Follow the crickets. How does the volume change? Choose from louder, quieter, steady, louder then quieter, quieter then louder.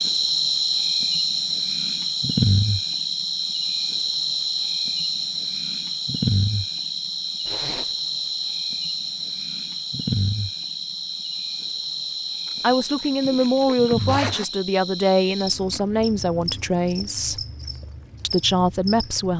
quieter.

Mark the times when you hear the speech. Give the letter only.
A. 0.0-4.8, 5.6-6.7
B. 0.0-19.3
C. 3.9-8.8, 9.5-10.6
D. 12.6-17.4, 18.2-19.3
D.